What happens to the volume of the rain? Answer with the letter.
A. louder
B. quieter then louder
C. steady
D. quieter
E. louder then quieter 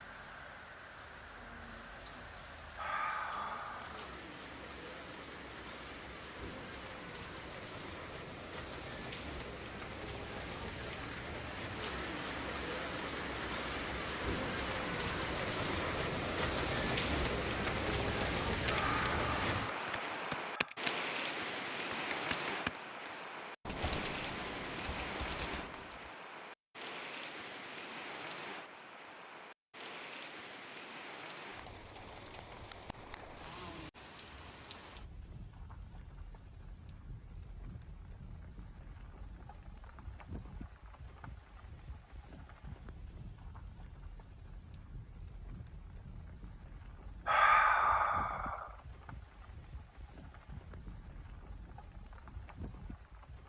E.